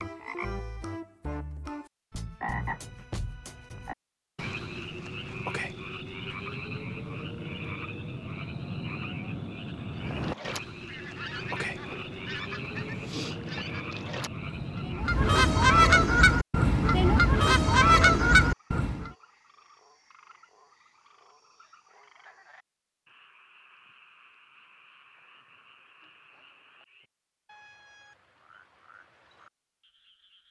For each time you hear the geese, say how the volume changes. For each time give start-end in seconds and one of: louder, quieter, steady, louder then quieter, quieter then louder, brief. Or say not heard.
10.1-19.1 louder.